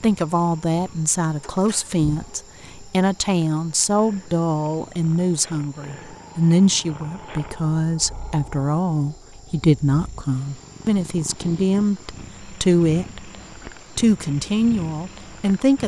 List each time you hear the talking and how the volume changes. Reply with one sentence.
You can hear the talking from 0.0 to 13.3 s, at a steady volume; and briefly from 13.9 to 15.8 s.